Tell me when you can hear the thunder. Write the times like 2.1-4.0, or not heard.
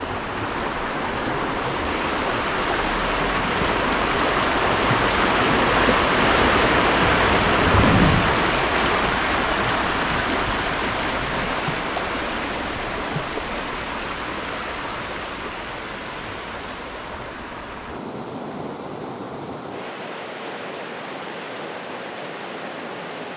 7.0-8.4.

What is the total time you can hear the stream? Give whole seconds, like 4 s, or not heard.
23 s.